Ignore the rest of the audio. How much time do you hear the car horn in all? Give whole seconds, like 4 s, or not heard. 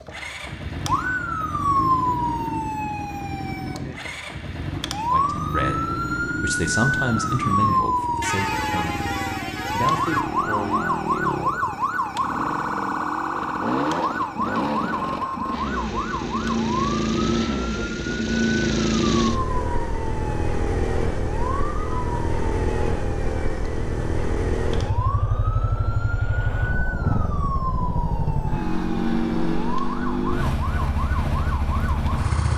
2 s.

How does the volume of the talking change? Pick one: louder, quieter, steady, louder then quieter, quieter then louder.
louder then quieter.